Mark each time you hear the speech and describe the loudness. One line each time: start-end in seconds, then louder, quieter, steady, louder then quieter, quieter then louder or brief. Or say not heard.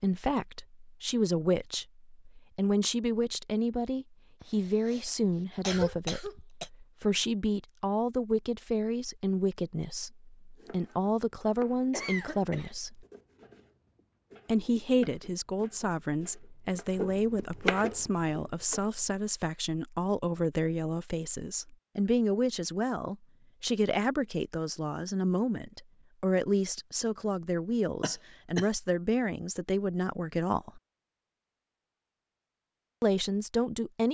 0.0-13.1 steady
14.4-30.8 steady
33.0-34.0 brief.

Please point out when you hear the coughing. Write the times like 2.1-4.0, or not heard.
4.4-6.7, 11.9-12.7, 28.0-28.7.